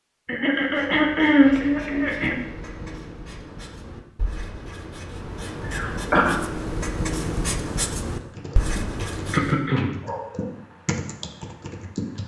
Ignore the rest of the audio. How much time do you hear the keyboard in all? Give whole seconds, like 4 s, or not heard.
4 s.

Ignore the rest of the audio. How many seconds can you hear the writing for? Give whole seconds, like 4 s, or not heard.
9 s.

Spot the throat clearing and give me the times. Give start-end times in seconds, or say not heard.
0.2-2.4, 5.7-6.3, 9.3-9.9.